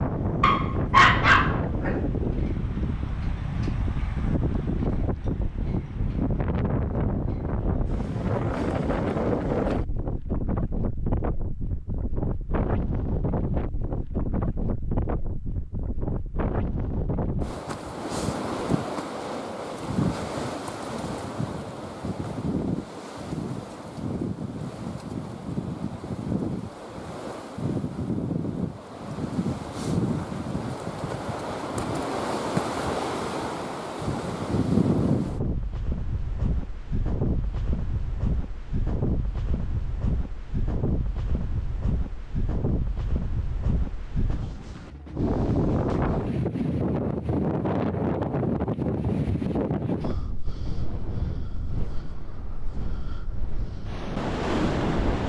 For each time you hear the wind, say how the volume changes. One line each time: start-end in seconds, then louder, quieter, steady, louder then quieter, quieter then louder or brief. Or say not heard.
0.0-55.2 steady.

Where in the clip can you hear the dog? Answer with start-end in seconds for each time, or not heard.
0.4-2.0.